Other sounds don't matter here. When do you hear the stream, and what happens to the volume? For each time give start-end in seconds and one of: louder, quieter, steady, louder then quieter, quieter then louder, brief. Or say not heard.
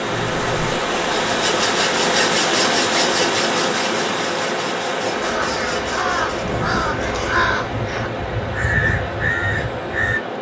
0.0-10.3 quieter.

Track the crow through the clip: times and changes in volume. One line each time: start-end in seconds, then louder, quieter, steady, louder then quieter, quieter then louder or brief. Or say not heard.
5.2-10.2 steady.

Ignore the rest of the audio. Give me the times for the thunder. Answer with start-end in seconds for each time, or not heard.
6.4-8.2.